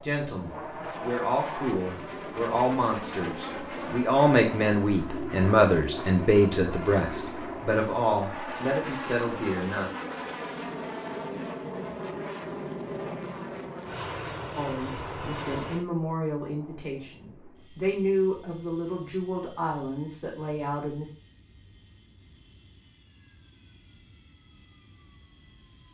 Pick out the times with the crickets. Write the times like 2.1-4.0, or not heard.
not heard.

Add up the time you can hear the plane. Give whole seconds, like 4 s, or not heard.
26 s.